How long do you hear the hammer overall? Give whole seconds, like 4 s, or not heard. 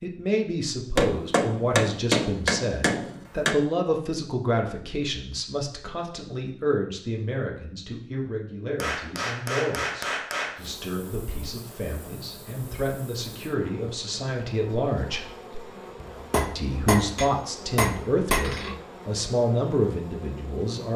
7 s.